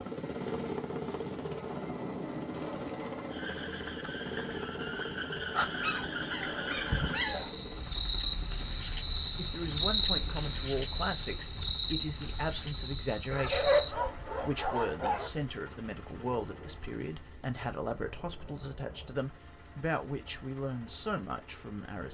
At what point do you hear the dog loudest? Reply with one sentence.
The volume of the dog peaks at 14 seconds.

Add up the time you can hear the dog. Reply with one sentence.
You can hear the dog for 4 seconds altogether.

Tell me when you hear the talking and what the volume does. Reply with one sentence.
The talking can be heard from 9.3 to 22.0 s, at a steady volume.